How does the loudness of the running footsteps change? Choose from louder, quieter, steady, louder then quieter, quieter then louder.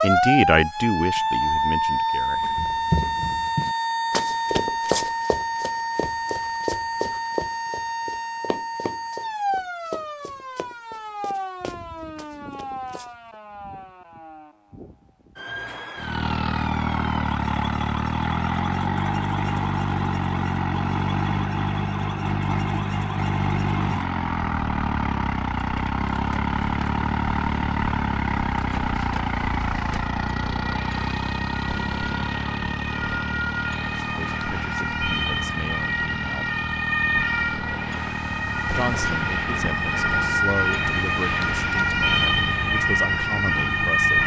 quieter.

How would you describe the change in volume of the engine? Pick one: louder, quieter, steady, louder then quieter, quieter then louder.
quieter.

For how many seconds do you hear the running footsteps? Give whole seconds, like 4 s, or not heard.
11 s.